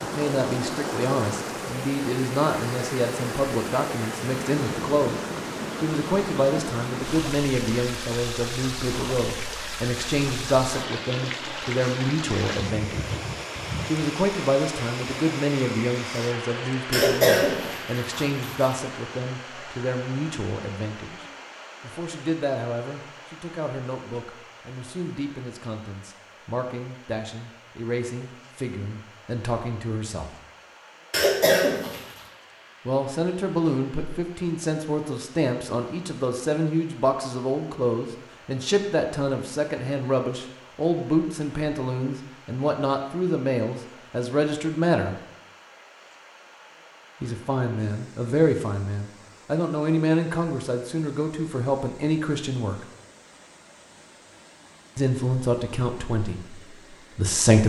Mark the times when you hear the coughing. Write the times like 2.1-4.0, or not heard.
16.9-18.8, 31.1-32.2.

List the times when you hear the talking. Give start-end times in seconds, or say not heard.
0.0-5.2, 5.8-13.2, 13.8-30.4, 32.9-45.1, 47.2-52.9, 55.0-57.6.